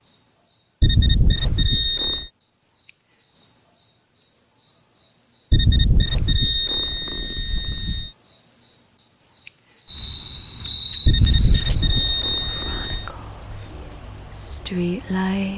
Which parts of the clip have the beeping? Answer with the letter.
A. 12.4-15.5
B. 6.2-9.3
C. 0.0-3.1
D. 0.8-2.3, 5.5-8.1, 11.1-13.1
D.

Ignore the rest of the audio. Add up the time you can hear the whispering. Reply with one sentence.
You can hear the whispering for 3 seconds altogether.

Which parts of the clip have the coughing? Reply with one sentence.
You can't hear the coughing here.